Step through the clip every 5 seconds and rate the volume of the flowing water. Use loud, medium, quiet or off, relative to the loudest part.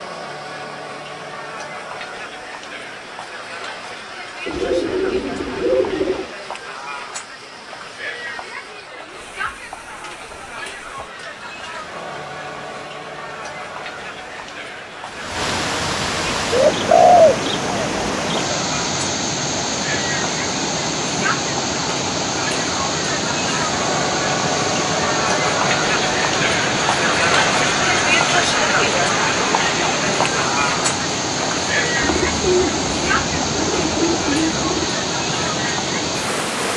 quiet, quiet, quiet, loud, loud, loud, loud, loud.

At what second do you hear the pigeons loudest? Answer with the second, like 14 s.
17 s.